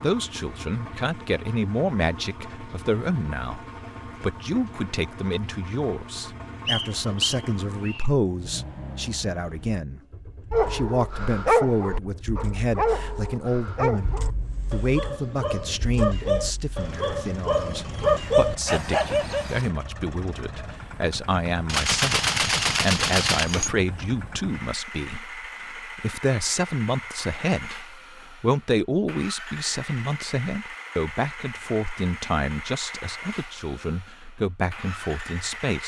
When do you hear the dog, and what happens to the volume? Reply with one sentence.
The dog can be heard from 10.5 to 19.6 s, getting quieter then louder.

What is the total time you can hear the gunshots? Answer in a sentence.
The gunshots can be heard for 2 seconds in total.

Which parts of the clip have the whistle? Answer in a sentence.
The whistle can be heard from 6.7 to 8.1 s.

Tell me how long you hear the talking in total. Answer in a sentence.
You can hear the talking for 35 seconds altogether.